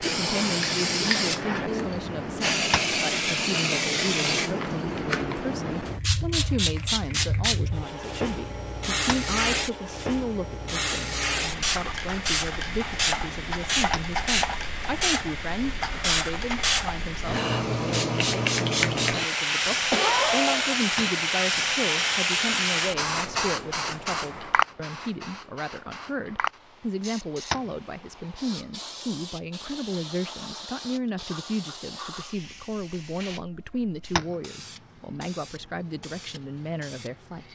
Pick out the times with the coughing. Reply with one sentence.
You can hear the coughing from 19.9 to 20.8 s.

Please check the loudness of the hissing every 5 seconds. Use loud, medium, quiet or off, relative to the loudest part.
loud, loud, loud, loud, loud, quiet, quiet, quiet.